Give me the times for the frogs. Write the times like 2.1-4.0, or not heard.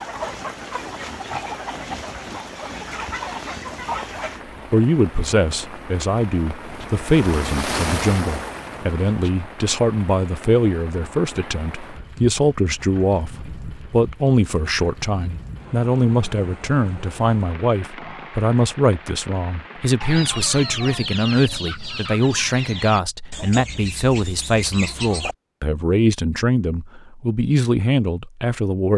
not heard.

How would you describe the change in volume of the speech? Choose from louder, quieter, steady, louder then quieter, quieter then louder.
steady.